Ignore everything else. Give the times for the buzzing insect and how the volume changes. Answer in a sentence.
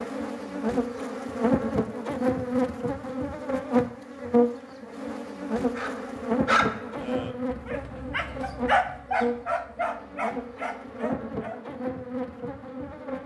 The buzzing insect can be heard from 0.0 to 13.2 s, getting quieter.